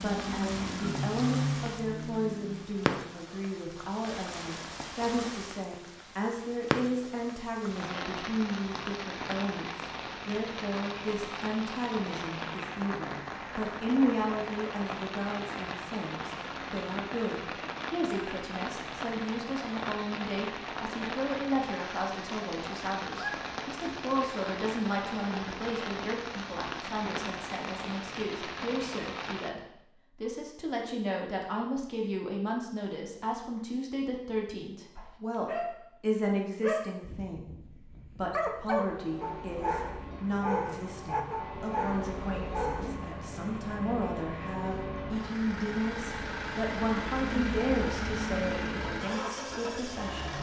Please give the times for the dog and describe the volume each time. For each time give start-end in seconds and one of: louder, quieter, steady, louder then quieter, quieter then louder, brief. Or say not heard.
35.0-35.8 brief
36.6-43.0 louder.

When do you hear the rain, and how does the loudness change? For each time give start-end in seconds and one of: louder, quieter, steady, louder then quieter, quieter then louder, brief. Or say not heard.
0.0-29.5 steady.